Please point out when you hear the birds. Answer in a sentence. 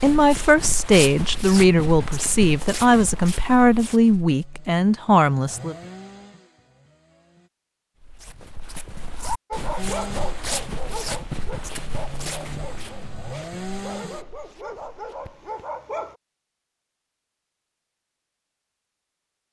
The birds can't be heard in this clip.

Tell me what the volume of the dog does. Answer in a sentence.
The loudness of the dog goes down, then up.